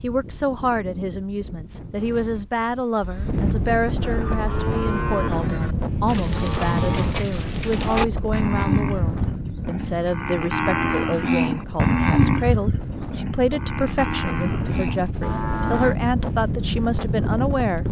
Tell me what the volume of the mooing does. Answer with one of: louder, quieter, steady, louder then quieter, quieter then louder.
louder then quieter.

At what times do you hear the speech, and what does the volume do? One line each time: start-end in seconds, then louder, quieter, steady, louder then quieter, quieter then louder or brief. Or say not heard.
0.0-17.8 steady.